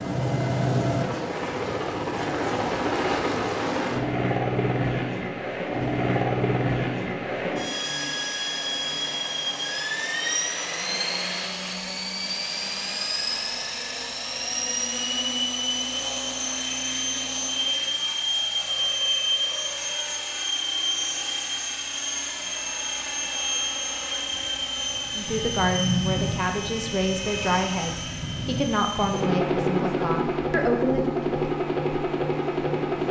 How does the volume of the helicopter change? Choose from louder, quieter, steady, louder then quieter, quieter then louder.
steady.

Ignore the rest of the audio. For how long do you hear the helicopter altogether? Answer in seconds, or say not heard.
33 s.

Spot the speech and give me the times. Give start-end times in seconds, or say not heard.
25.1-31.1.